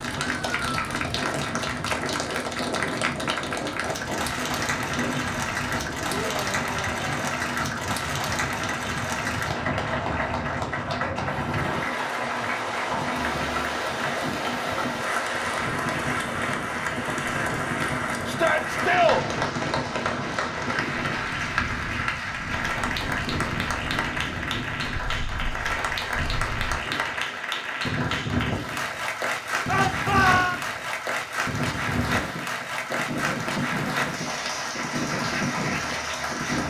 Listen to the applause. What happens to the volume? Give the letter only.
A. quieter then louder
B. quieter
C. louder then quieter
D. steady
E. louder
D.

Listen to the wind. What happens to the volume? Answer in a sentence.
The loudness of the wind stays about the same.